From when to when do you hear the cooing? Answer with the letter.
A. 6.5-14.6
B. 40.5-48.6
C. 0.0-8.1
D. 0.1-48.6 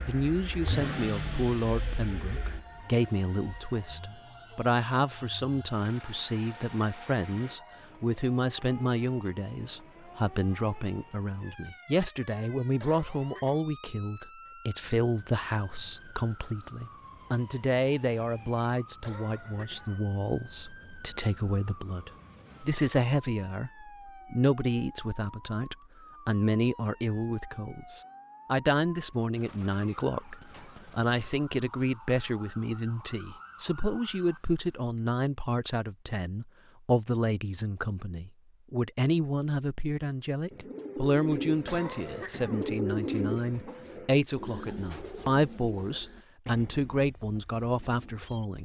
B.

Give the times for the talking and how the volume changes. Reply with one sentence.
You can hear the talking from 0.1 to 48.6 s, at a steady volume.